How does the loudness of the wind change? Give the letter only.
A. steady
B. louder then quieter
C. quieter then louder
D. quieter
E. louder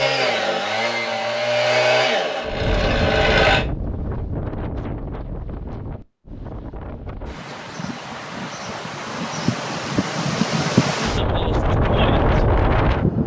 C.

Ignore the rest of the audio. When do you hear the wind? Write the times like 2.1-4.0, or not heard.
2.5-13.2.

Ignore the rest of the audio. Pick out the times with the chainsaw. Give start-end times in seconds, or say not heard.
0.0-3.6.